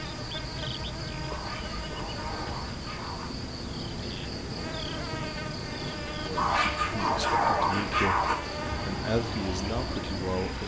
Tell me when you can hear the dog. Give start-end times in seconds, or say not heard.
1.2-3.3, 6.3-8.3.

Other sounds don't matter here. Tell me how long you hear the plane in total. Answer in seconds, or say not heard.
9 s.